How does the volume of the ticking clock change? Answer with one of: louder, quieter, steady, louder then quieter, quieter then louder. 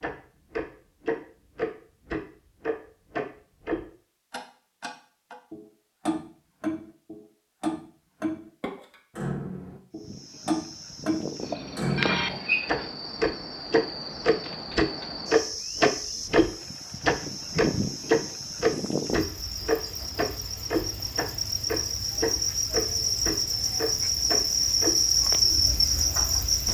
louder then quieter.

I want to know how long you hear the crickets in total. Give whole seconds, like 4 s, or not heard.
17 s.